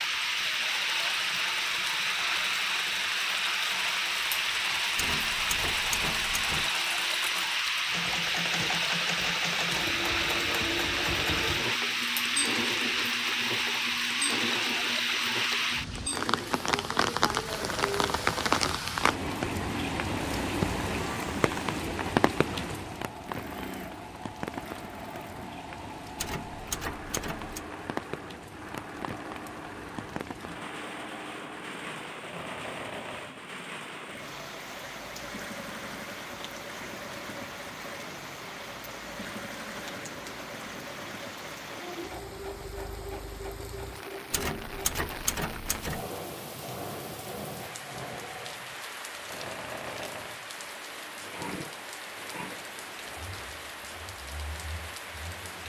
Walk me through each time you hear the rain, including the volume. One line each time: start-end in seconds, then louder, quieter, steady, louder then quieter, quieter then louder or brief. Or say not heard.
0.0-55.6 quieter.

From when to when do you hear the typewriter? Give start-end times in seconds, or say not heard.
5.0-6.7, 26.1-27.6, 44.3-46.0.